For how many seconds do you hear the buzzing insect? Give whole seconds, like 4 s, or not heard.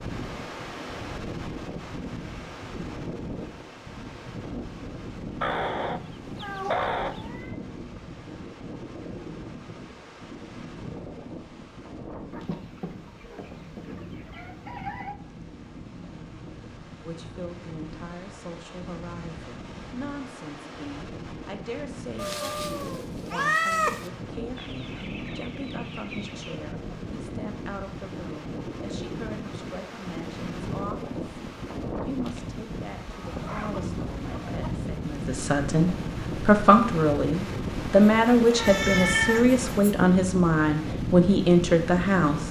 not heard.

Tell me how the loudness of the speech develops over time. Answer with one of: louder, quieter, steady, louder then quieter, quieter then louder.
louder.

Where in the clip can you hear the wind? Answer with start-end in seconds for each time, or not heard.
0.0-42.4.